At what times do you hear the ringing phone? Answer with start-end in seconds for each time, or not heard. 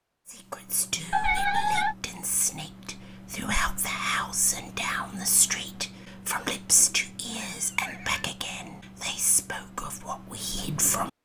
not heard.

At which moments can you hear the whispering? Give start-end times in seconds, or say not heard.
0.2-11.1.